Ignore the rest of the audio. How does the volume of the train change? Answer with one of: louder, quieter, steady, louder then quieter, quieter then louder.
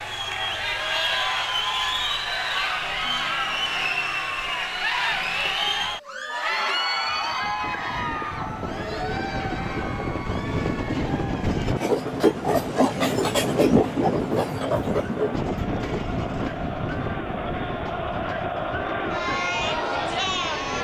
louder then quieter.